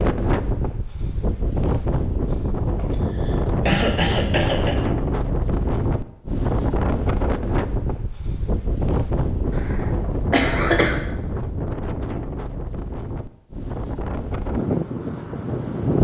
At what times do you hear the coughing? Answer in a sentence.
The coughing can be heard from 2.9 to 4.8 s and from 9.6 to 11.0 s.